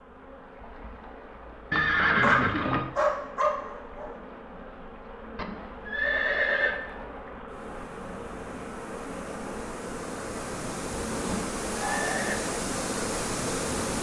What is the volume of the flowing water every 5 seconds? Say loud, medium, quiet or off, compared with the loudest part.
quiet, medium, loud.